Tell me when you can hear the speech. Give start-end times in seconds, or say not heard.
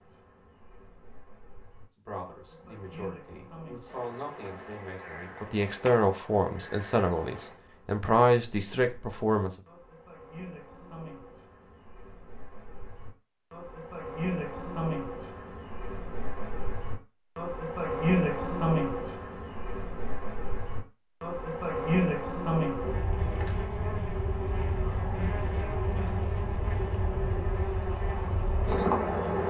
1.9-9.6.